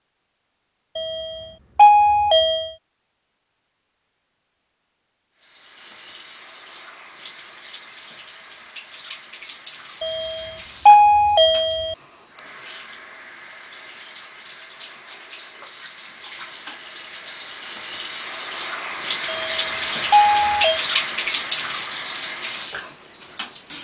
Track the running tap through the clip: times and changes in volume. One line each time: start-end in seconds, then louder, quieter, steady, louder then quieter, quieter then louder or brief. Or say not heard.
5.3-23.7 louder.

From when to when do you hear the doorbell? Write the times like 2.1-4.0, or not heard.
0.9-2.7, 10.0-11.9, 19.2-20.8.